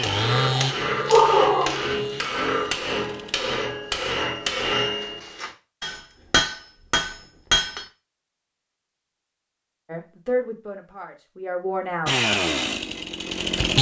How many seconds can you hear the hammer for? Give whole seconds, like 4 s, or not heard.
8 s.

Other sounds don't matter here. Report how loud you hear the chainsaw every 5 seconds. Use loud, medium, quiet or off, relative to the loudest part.
medium, off, loud.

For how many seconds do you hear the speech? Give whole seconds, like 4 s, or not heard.
2 s.